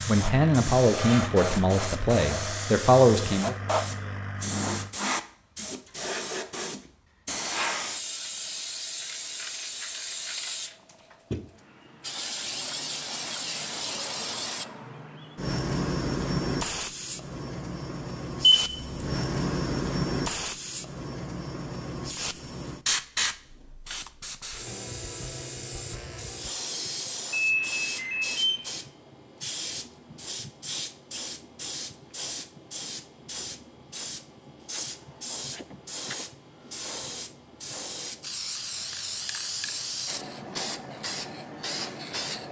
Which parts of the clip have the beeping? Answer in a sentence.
The beeping can be heard from 18.4 to 19.0 s and from 27.3 to 28.7 s.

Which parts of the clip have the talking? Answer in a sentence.
You can hear the talking from 0.1 to 3.5 s.